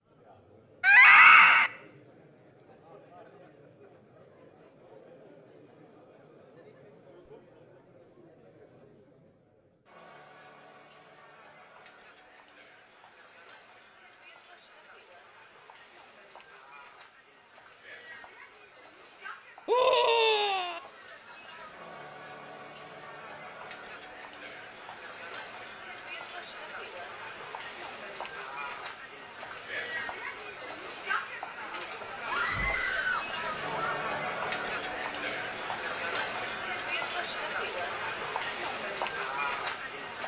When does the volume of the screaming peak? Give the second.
1 s.